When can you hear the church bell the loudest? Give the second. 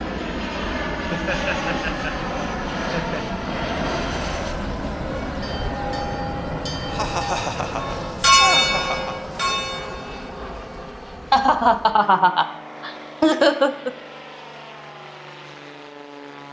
8 s.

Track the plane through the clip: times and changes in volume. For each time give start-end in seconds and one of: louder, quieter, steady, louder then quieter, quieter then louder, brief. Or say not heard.
0.0-16.4 quieter.